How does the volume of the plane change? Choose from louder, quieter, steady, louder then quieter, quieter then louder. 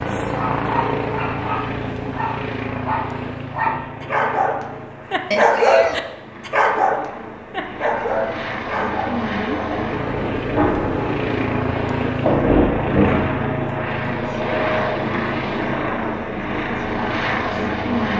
quieter then louder.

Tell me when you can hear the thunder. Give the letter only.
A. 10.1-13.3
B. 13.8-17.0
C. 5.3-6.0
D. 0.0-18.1
A.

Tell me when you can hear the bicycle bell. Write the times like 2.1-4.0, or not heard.
5.3-6.0.